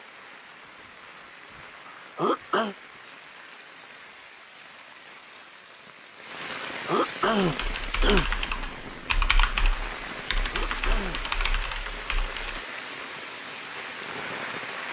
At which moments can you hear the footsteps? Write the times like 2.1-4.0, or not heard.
not heard.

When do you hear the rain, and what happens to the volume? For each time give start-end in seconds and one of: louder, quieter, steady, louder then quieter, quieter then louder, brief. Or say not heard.
0.0-14.8 louder.